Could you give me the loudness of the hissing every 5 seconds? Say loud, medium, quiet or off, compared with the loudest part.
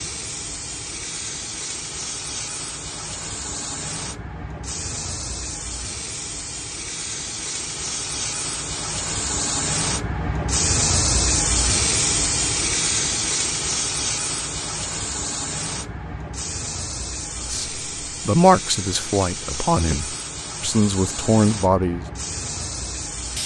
medium, medium, loud, medium, medium.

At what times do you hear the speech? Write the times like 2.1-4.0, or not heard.
17.4-22.1.